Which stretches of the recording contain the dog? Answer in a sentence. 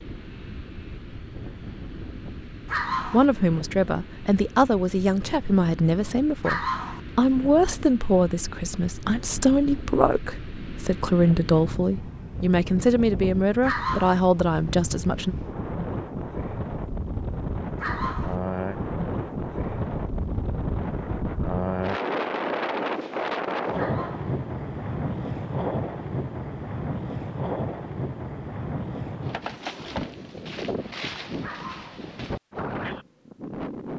The dog can be heard from 2.6 to 3.2 s, from 6.4 to 7.0 s, from 13.6 to 14.2 s, from 17.8 to 18.4 s, from 23.8 to 24.4 s and from 31.4 to 32.0 s.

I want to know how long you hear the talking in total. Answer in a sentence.
The talking can be heard for 12 seconds in total.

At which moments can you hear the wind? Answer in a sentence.
You can hear the wind from 0.0 to 33.9 s.